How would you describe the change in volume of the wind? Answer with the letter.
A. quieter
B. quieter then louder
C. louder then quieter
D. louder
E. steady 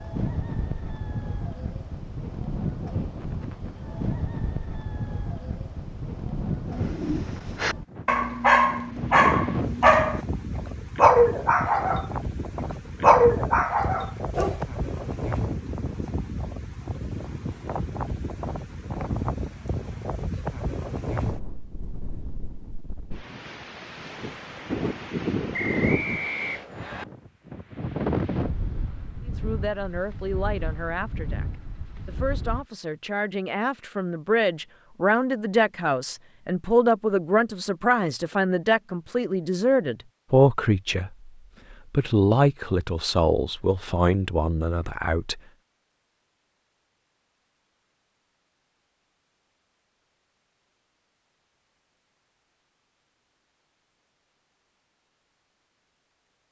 E.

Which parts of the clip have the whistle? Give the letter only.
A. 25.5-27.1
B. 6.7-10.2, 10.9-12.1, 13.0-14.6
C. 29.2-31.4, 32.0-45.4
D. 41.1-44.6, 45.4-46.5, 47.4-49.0
A.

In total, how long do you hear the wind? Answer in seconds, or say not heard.
33 s.